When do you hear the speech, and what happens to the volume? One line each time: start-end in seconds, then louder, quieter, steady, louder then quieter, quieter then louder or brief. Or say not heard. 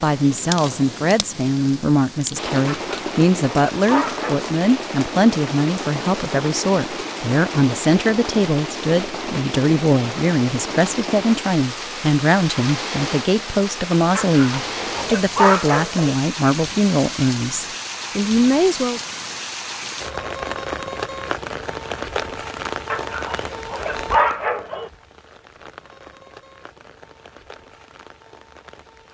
0.0-19.0 steady.